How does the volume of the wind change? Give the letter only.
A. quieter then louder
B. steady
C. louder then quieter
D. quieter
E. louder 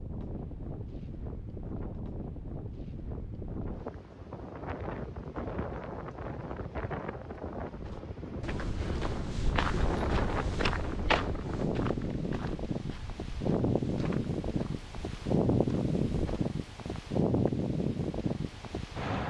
E.